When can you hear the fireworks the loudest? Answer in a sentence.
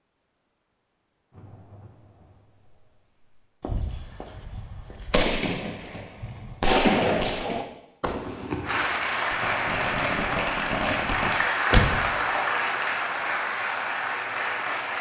The volume of the fireworks peaks at 7 seconds.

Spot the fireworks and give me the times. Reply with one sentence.
The fireworks can be heard from 3.6 to 12.1 s.